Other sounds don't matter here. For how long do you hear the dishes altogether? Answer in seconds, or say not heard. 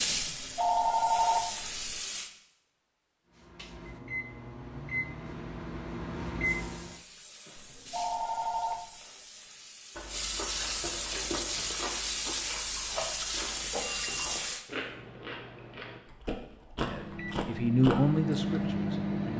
not heard.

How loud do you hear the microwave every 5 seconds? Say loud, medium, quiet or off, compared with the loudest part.
medium, loud, off, loud.